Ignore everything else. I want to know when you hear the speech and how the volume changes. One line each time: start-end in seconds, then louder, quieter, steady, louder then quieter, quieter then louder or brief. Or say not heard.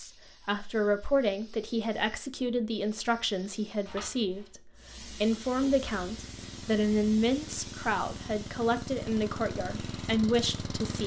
0.0-11.0 steady.